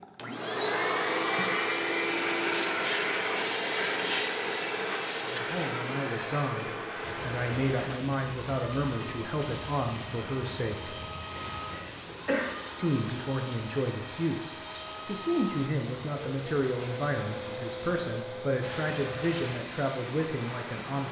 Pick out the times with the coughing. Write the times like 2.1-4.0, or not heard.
11.3-12.6.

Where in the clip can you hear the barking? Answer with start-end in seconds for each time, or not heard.
not heard.